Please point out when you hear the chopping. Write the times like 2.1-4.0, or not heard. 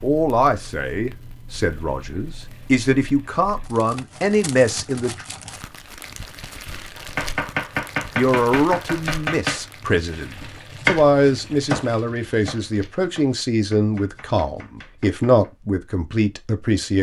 7.0-15.5.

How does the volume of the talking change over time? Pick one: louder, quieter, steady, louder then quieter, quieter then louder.
steady.